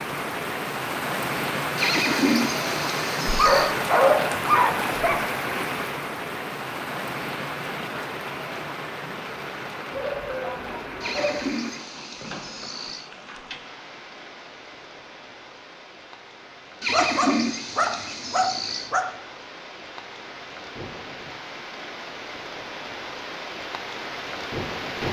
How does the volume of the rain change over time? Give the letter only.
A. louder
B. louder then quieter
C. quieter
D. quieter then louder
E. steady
D.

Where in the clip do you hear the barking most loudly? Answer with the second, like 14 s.
4 s.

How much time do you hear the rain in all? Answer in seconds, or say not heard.
25 s.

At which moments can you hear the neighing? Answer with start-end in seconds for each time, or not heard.
1.8-3.8, 11.0-13.1, 16.8-18.9.